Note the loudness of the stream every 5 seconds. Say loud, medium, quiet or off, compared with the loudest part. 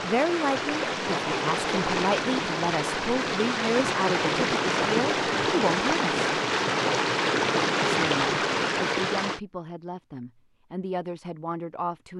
loud, loud, off.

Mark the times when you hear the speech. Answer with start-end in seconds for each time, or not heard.
0.0-6.3, 7.8-12.1.